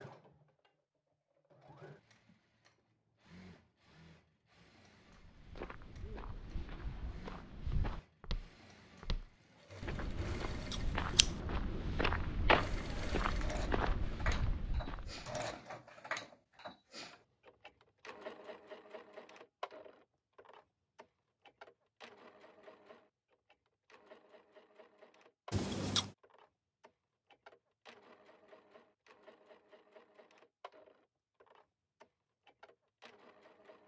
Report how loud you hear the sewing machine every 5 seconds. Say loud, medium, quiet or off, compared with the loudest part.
quiet, quiet, loud, loud, quiet, quiet, quiet.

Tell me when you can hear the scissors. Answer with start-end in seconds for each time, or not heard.
10.3-11.3, 25.5-26.1.